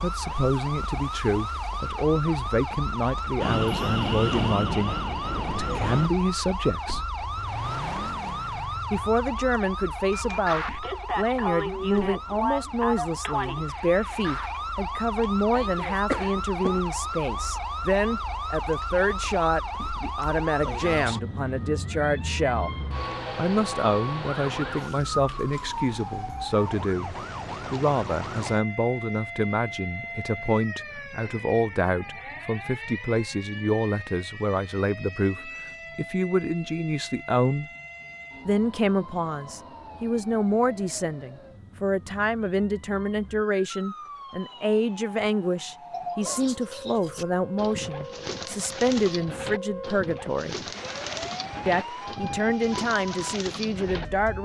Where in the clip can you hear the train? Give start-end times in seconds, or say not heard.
3.4-6.1.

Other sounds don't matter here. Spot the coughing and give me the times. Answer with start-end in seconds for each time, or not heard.
16.1-16.8.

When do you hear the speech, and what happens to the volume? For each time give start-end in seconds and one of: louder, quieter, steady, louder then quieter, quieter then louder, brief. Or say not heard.
0.0-7.1 steady
8.9-22.8 steady
23.4-37.7 steady
38.5-50.5 steady
51.6-54.4 brief.